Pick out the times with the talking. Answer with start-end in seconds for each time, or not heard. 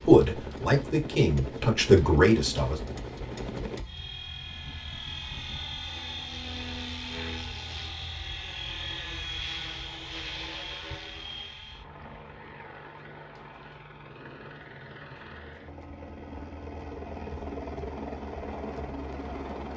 0.0-2.8.